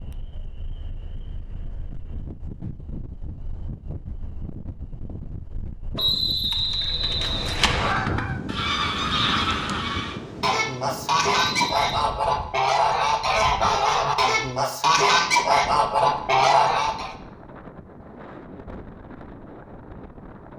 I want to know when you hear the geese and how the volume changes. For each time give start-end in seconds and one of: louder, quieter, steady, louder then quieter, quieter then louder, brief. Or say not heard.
6.5-17.1 louder.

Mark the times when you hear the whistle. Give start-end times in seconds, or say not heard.
6.0-8.0, 11.6-12.1.